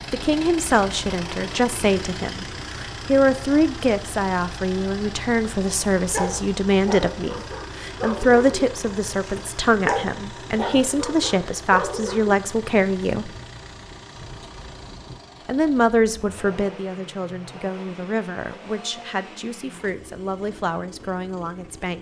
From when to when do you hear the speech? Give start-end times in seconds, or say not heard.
0.1-13.3, 15.4-21.9.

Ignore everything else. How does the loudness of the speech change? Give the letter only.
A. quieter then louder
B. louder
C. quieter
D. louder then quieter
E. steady
C.